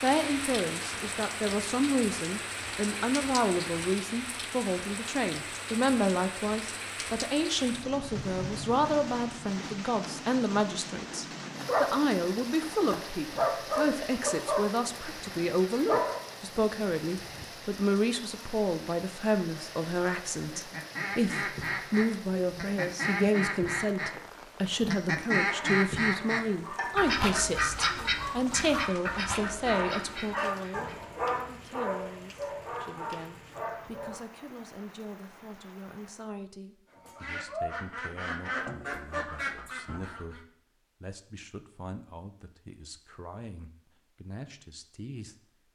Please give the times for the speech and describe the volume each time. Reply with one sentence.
The speech can be heard from 0.0 to 45.4 s, getting quieter.